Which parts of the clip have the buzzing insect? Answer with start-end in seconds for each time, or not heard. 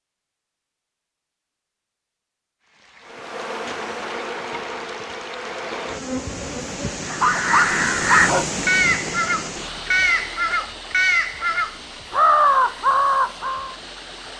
3.0-7.0.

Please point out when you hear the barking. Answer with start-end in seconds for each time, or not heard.
7.1-9.1.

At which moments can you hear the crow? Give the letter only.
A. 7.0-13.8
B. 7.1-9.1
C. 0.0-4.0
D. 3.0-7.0
A.